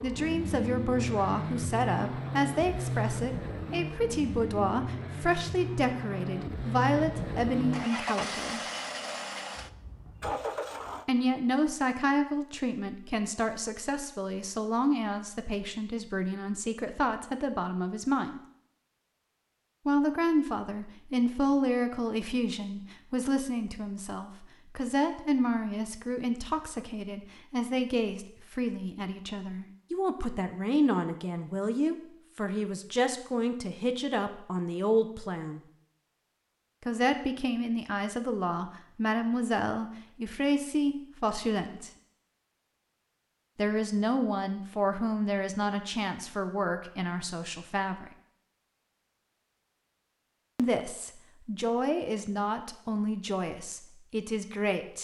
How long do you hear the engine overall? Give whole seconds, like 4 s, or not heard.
11 s.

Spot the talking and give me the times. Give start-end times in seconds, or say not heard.
0.0-8.6, 11.1-18.4, 19.9-35.6, 36.9-41.9, 43.5-48.1, 50.5-54.9.